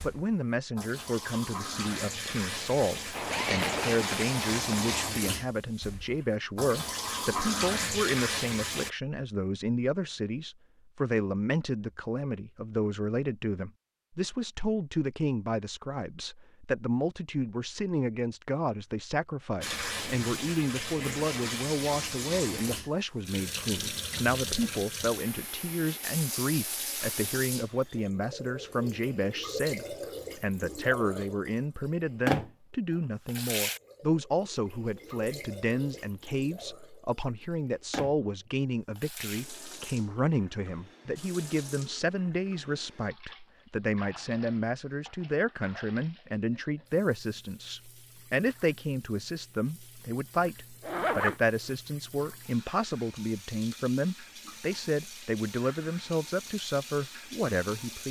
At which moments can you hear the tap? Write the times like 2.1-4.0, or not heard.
0.0-8.9, 19.6-58.0.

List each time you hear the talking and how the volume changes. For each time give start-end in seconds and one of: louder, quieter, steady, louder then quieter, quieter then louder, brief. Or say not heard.
0.0-58.0 steady.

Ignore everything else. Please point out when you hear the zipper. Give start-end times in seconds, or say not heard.
3.1-5.1, 19.6-20.4, 50.8-51.8.